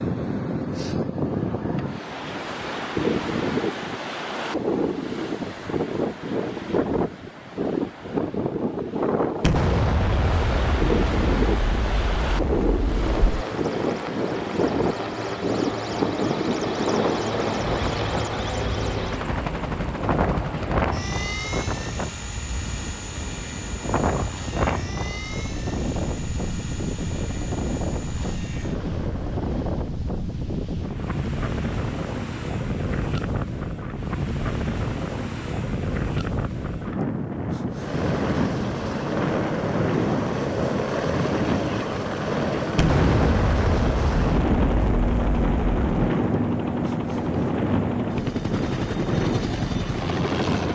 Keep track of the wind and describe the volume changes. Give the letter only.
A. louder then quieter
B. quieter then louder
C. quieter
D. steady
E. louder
D.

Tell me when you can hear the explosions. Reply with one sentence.
You can hear the explosions from 9.4 to 13.3 s and from 42.8 to 46.0 s.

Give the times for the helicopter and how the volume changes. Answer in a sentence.
The helicopter can be heard from 12.9 to 29.8 s, getting quieter; and from 37.7 to 50.7 s, at a steady volume.